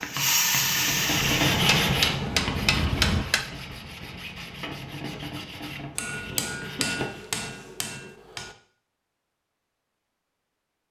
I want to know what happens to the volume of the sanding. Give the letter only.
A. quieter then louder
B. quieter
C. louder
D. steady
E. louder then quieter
B.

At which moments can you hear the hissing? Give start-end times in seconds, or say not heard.
0.0-3.2.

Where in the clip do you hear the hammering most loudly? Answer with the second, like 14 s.
3 s.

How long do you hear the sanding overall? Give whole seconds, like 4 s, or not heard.
7 s.